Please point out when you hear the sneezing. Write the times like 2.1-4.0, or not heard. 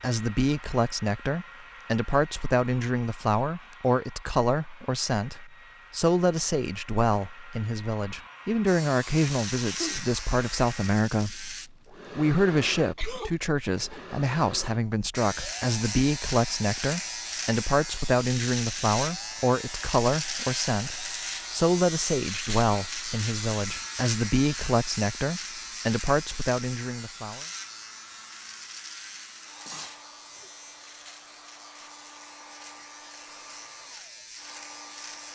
9.6-10.1, 12.9-14.0, 29.6-30.5.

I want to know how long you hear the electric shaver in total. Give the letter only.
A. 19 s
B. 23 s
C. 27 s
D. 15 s
B.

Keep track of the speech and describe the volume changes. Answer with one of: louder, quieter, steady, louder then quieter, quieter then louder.
steady.